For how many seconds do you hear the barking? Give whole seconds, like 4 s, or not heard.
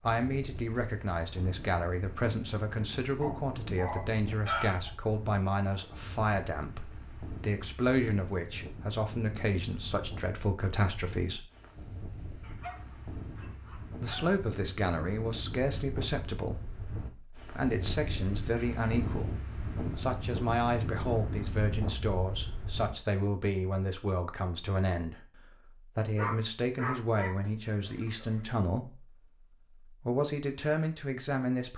6 s.